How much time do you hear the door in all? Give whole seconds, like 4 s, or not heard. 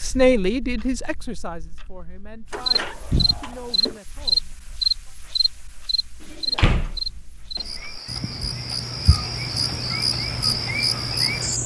3 s.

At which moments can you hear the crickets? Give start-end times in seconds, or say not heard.
2.6-11.6.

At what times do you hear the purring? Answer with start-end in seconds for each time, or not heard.
not heard.